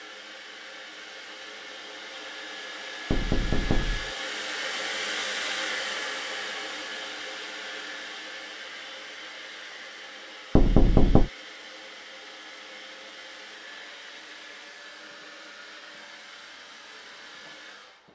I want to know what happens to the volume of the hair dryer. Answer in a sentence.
The volume of the hair dryer goes up, then down.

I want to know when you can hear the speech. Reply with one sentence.
The speech can't be heard in this clip.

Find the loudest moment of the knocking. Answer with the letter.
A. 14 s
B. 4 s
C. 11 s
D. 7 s
C.